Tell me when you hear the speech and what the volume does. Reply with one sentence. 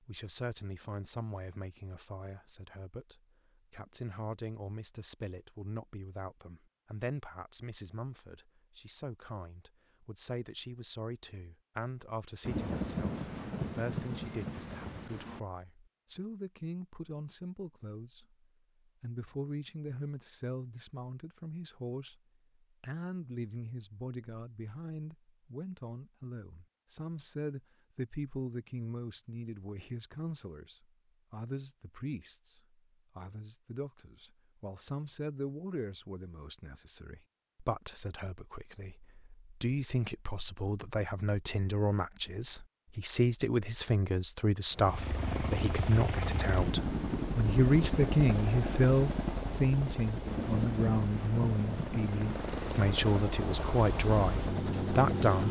You can hear the speech from 0.0 to 18.4 s, at a steady volume; and from 19.0 to 55.4 s, getting louder.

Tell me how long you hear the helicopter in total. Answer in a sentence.
The helicopter can be heard for 11 seconds in total.